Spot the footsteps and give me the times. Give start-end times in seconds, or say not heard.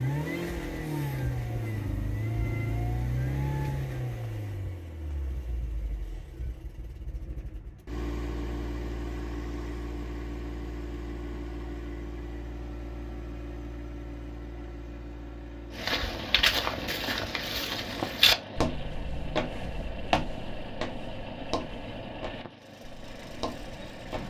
15.8-24.2.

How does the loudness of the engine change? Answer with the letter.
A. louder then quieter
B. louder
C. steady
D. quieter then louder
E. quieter
E.